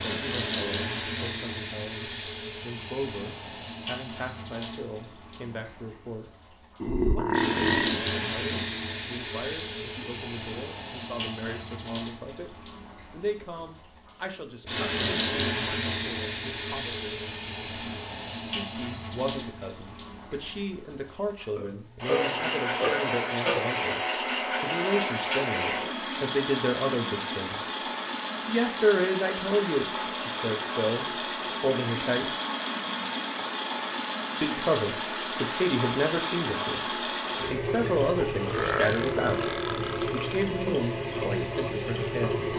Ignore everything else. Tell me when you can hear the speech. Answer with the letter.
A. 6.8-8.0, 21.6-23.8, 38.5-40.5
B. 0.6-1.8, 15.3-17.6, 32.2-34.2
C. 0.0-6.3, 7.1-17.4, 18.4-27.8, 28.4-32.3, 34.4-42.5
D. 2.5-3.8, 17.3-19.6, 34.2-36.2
C.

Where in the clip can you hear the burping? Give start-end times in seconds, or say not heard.
6.8-8.0, 21.6-23.8, 38.5-40.5.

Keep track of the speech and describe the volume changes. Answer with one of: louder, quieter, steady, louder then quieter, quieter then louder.
louder.